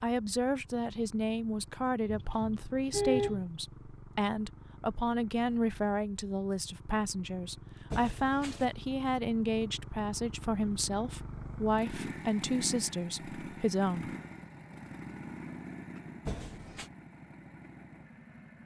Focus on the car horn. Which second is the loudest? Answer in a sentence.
The loudest moment of the car horn is at 3 seconds.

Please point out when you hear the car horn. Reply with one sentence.
The car horn can be heard from 2.0 to 3.5 s, from 7.9 to 8.8 s and from 16.2 to 16.9 s.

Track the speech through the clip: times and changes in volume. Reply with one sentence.
You can hear the speech from 0.0 to 14.2 s, at a steady volume.